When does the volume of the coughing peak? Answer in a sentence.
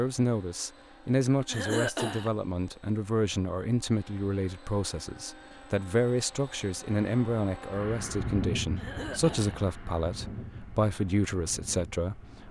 The loudest moment of the coughing is at 2 seconds.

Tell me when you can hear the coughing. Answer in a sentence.
The coughing can be heard from 1.4 to 2.3 s and from 8.8 to 9.6 s.